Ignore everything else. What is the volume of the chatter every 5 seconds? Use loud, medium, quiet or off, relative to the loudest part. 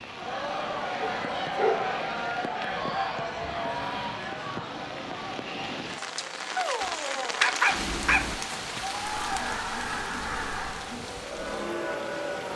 loud, medium, loud.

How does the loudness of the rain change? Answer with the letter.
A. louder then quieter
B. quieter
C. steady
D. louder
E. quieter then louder
A.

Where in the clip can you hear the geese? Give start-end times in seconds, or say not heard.
2.6-4.3, 9.0-10.9.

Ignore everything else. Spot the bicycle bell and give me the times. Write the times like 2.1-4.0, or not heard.
not heard.